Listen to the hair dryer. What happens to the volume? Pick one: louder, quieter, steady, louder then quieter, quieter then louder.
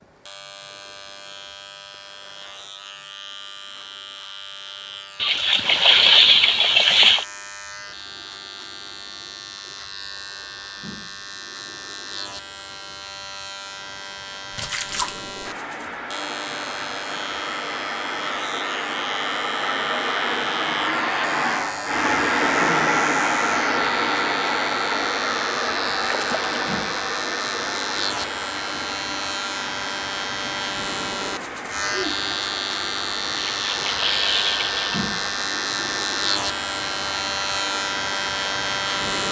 louder then quieter.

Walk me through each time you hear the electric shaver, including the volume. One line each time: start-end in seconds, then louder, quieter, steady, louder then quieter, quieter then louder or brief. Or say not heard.
0.0-39.2 louder.